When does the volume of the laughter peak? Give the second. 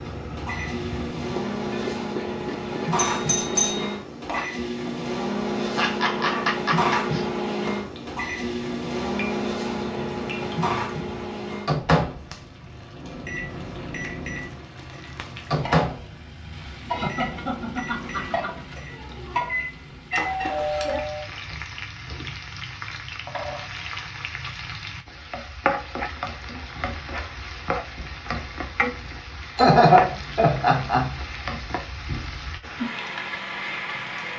30 s.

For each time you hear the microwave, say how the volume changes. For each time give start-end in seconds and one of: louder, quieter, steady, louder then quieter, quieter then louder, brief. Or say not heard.
0.0-20.4 quieter.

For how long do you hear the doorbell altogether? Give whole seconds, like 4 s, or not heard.
3 s.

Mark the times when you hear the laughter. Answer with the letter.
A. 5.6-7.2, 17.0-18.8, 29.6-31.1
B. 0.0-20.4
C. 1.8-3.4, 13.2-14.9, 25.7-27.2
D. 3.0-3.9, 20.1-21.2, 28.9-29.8
A.